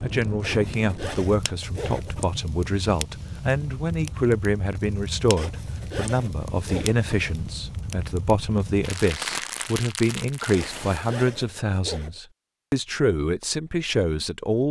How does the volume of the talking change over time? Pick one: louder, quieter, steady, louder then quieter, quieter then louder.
steady.